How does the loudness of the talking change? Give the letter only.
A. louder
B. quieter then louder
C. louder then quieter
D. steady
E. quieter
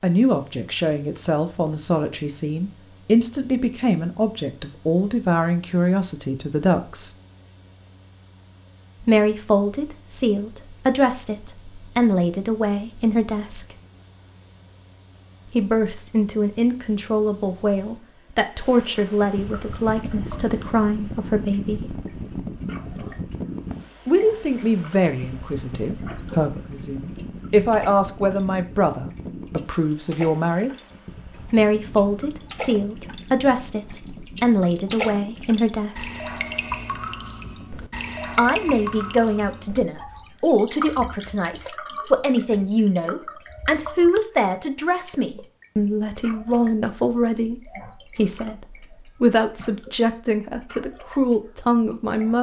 D.